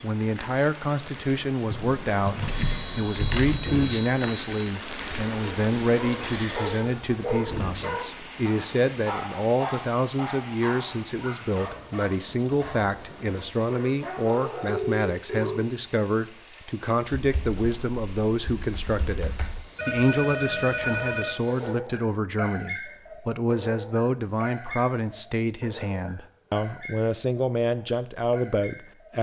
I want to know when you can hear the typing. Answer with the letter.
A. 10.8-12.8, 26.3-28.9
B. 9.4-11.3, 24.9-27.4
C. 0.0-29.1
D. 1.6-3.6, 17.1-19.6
D.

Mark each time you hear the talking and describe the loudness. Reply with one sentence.
You can hear the talking from 0.0 to 29.1 s, at a steady volume.